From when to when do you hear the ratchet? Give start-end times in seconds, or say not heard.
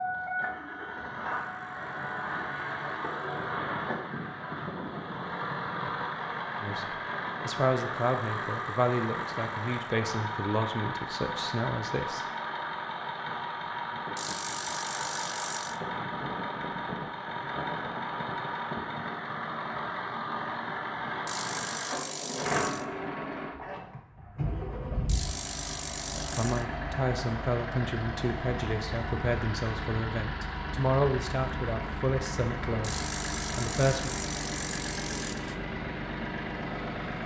1.3-3.6, 8.0-9.9, 14.2-15.8, 21.2-22.9, 25.1-26.6, 32.8-35.5.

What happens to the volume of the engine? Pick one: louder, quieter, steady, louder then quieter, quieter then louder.
steady.